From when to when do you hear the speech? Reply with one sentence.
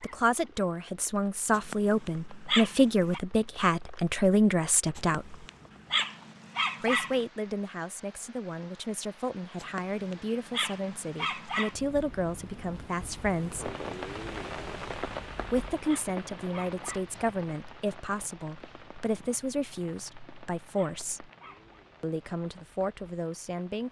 The speech can be heard from 0.0 to 5.3 s, from 6.8 to 13.7 s, from 15.5 to 21.3 s and from 22.0 to 23.8 s.